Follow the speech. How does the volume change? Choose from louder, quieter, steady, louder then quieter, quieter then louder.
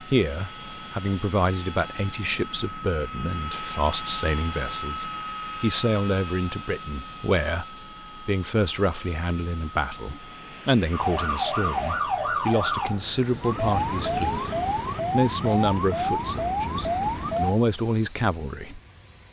steady.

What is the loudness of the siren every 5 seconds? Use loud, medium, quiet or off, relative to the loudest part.
off, off, loud, loud.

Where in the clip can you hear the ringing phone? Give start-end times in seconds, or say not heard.
not heard.